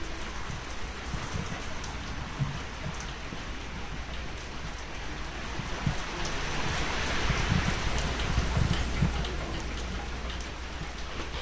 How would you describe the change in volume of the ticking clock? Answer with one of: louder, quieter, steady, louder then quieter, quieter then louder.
louder then quieter.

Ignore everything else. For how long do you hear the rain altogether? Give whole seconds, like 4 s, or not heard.
11 s.